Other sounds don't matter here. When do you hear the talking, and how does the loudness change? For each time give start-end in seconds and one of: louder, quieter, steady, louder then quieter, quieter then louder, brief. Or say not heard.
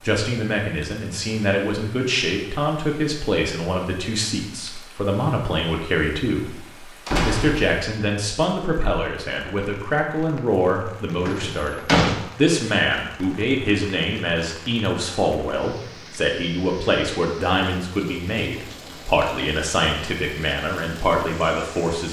0.0-22.0 steady.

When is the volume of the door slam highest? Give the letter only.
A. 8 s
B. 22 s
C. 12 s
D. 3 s
C.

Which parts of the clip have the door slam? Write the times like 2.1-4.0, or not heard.
7.0-7.8, 11.2-12.2.